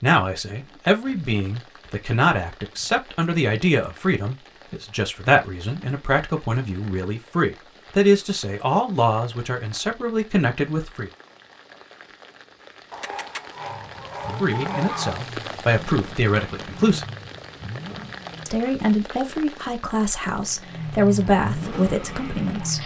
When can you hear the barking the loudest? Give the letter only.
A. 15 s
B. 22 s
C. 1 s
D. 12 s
A.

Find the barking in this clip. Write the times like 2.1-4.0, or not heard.
12.9-15.2.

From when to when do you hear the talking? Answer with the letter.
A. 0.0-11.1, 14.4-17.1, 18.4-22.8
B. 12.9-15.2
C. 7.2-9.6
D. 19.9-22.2
A.